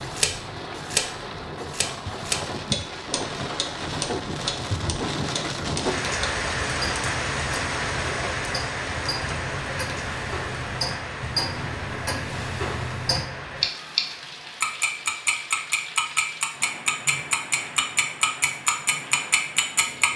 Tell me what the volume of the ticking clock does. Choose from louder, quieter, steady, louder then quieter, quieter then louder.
quieter then louder.